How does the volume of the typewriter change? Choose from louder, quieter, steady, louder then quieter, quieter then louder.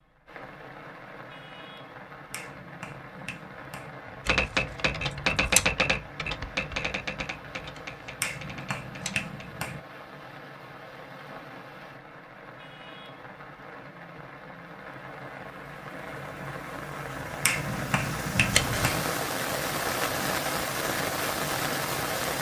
quieter.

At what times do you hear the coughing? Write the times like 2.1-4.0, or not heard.
not heard.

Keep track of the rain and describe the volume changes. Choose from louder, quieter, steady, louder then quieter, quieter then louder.
louder.